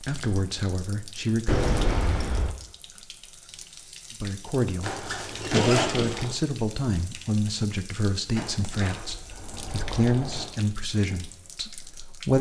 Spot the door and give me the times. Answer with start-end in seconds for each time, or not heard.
1.4-2.5, 5.4-6.2, 8.3-10.5.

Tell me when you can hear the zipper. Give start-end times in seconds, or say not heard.
4.8-6.3.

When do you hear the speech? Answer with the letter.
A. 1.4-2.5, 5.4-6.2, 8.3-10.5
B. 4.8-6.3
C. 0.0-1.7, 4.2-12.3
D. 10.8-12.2
C.